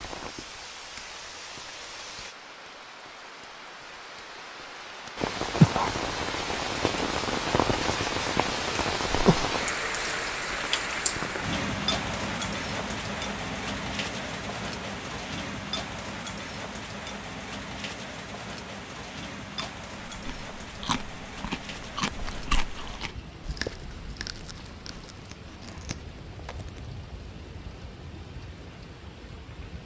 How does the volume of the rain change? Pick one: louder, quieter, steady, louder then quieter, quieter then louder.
quieter.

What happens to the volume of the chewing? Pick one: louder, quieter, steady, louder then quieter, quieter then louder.
quieter.